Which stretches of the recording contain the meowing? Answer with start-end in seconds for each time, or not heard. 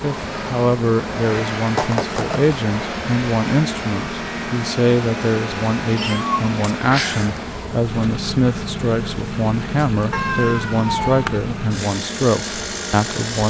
1.8-2.6, 5.8-7.3, 10.1-11.3.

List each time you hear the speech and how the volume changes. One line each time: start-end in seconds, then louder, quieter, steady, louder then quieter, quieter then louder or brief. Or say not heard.
0.0-13.4 steady.